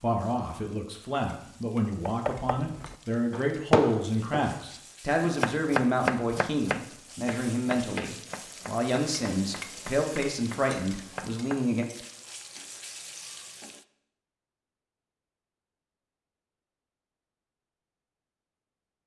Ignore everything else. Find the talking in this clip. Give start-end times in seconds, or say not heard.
0.0-11.8.